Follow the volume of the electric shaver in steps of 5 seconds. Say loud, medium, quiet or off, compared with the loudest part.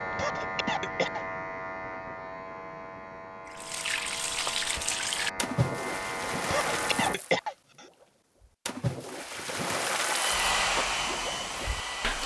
loud, loud, medium.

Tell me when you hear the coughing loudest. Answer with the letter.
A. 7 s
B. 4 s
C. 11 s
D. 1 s
A.